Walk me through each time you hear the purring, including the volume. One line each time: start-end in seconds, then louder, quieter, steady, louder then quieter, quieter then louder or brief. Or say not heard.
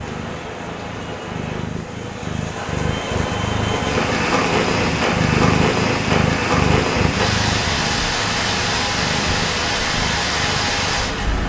0.0-11.4 louder then quieter.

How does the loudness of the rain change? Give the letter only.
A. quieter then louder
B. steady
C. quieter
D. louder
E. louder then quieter
D.